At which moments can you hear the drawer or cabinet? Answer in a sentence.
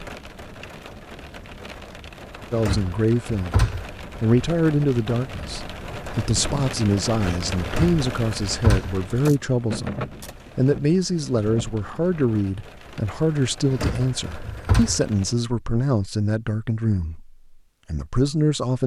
The drawer or cabinet can be heard from 2.5 to 3.9 s, from 7.7 to 8.9 s and from 13.7 to 15.0 s.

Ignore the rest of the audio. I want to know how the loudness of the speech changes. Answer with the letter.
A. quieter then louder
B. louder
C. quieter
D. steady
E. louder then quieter
D.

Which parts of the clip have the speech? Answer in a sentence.
The speech can be heard from 2.5 to 18.8 s.